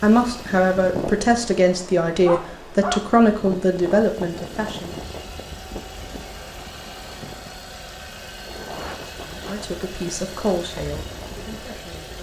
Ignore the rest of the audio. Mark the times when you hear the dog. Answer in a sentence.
The dog can be heard from 2.2 to 3.0 s.